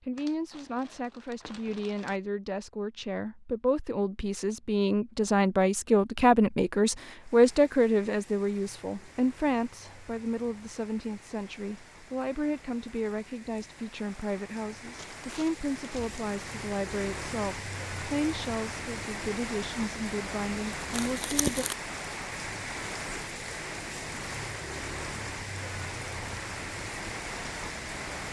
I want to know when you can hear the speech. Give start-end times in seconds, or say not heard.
0.0-21.6.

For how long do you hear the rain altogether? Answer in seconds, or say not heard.
21 s.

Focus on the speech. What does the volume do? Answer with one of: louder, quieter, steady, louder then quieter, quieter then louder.
louder then quieter.